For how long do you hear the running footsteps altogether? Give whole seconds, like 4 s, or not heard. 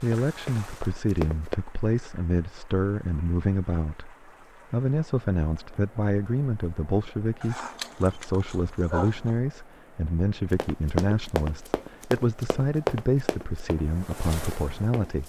6 s.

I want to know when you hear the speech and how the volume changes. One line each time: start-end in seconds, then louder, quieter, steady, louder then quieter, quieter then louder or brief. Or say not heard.
0.0-15.2 steady.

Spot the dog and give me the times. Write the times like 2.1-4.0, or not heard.
7.4-9.3.